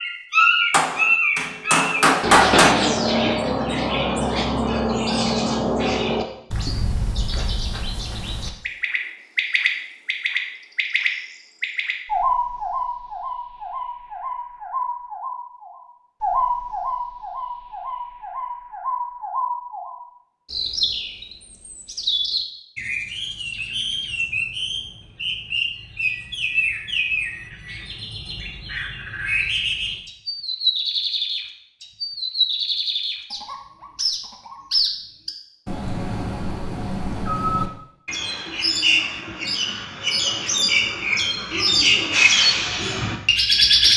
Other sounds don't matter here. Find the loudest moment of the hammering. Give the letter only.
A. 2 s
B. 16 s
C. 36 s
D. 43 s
A.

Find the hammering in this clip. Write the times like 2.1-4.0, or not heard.
0.7-2.8.